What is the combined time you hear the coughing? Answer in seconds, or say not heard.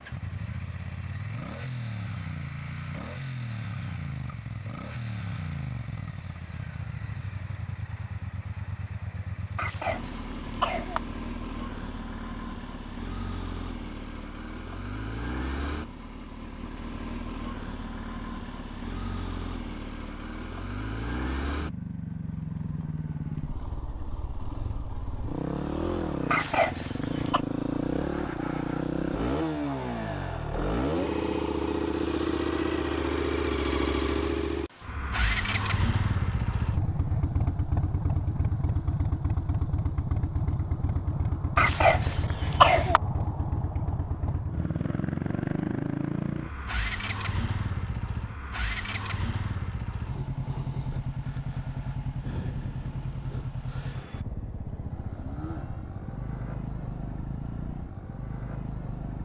4 s.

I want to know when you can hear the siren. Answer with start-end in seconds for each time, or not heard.
not heard.